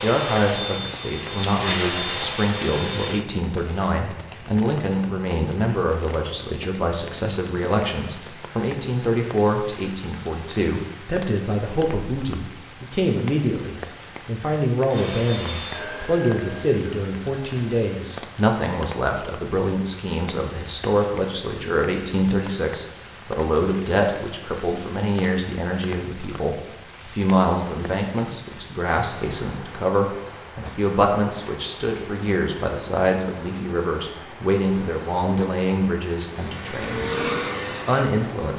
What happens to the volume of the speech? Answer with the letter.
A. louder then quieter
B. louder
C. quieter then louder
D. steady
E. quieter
D.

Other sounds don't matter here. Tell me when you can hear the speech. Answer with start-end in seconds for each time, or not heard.
0.0-38.5.